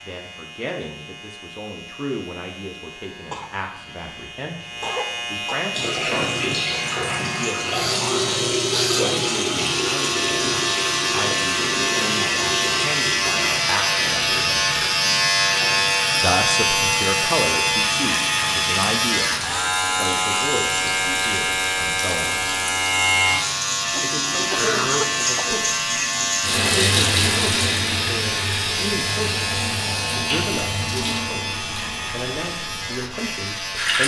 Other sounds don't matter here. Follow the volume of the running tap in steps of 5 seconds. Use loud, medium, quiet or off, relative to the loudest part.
off, loud, loud, medium, medium, loud, loud.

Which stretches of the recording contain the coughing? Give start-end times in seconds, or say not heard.
3.3-5.7, 23.9-25.6.